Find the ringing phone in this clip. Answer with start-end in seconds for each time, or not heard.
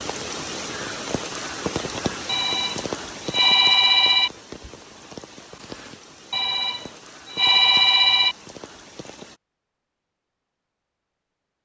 2.2-4.3, 6.3-8.3.